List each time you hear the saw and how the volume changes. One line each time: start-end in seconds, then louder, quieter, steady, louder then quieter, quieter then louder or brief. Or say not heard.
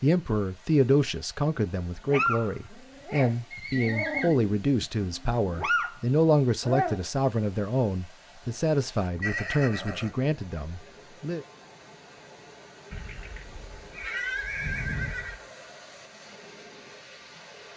not heard.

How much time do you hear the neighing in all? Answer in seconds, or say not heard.
4 s.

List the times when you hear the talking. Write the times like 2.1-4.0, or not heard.
0.0-11.4.